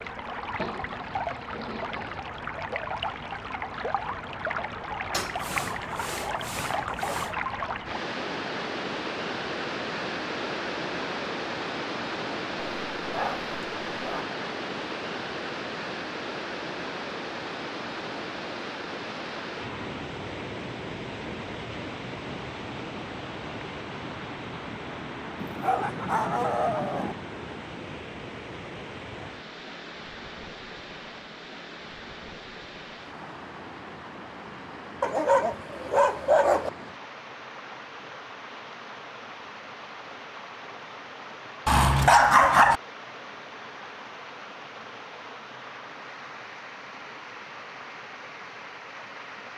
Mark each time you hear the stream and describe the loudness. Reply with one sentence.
You can hear the stream from 0.0 to 49.5 s, getting quieter.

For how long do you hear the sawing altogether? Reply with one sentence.
You can hear the sawing for 2 seconds altogether.